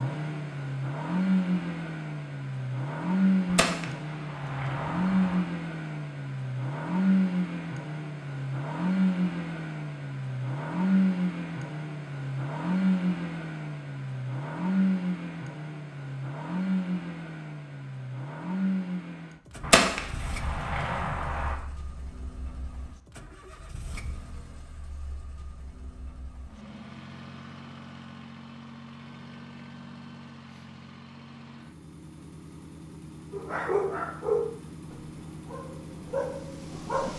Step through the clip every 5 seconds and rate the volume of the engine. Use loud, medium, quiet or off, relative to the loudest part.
loud, loud, loud, medium, quiet, quiet, quiet, quiet.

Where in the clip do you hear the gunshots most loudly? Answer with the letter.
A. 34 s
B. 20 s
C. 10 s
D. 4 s
B.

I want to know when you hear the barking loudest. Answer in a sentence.
The volume of the barking peaks at 34 seconds.